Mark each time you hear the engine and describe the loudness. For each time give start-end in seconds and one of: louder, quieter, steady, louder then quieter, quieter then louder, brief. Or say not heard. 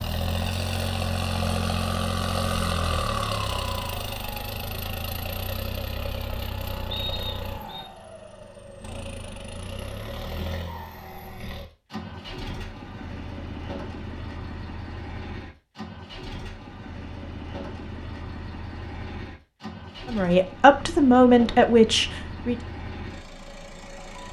0.0-24.2 quieter.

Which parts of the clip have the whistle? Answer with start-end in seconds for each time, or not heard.
6.9-7.8.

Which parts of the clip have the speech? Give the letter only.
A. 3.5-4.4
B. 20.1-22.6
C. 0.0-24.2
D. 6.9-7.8
B.